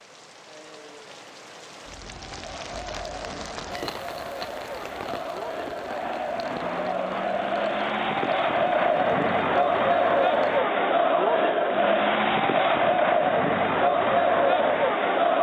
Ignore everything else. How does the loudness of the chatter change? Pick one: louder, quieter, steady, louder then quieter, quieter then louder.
louder.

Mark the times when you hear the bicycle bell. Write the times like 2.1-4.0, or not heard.
not heard.